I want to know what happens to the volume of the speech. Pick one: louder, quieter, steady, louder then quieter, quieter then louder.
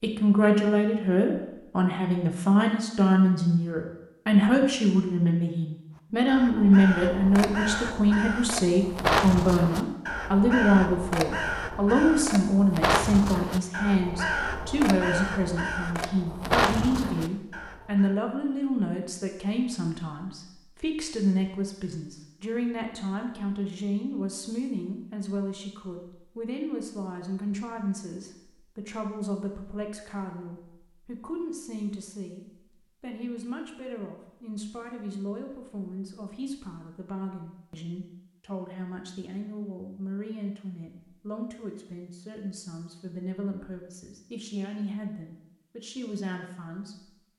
quieter.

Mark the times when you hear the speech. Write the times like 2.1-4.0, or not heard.
0.0-47.1.